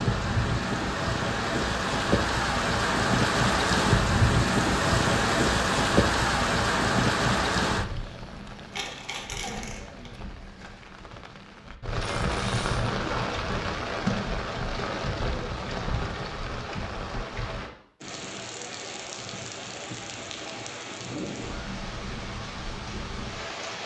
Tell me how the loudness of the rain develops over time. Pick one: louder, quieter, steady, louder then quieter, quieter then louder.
quieter.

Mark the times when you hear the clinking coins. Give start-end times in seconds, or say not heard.
8.7-10.1, 12.0-12.9.